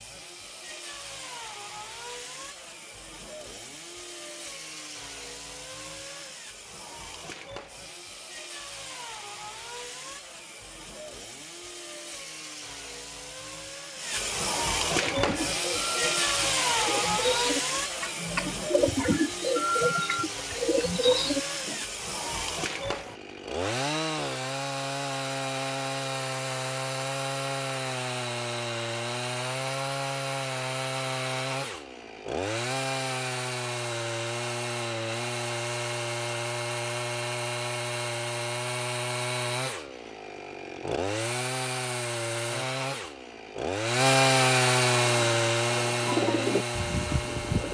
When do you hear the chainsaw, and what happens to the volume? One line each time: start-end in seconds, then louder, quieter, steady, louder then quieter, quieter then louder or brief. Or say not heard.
0.0-47.7 louder.